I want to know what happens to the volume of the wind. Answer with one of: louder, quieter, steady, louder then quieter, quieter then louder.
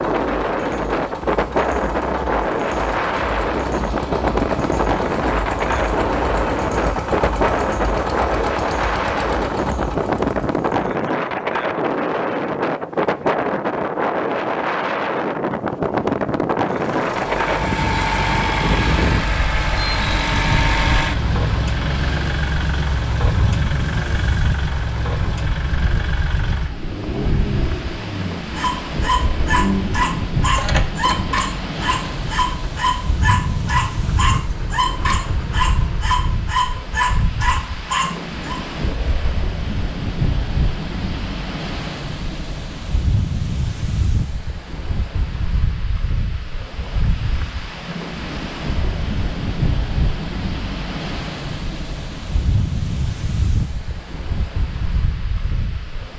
quieter.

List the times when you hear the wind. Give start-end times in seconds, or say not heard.
0.0-56.1.